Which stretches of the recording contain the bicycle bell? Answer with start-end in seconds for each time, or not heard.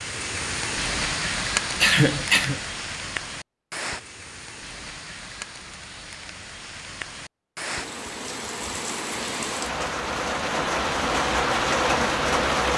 not heard.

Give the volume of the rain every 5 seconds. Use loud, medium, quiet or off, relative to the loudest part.
medium, medium, loud.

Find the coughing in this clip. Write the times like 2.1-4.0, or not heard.
1.8-2.6.